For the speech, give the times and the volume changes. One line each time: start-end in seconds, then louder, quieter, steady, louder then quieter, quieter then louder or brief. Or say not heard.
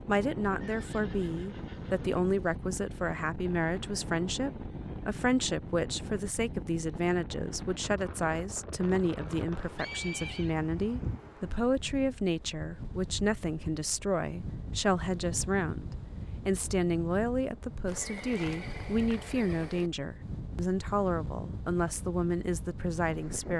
0.1-23.5 steady.